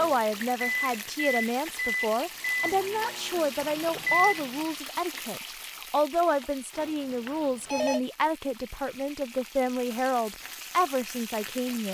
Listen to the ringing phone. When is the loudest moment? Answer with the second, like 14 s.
8 s.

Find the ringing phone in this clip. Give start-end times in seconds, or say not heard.
0.3-1.0, 6.7-8.0.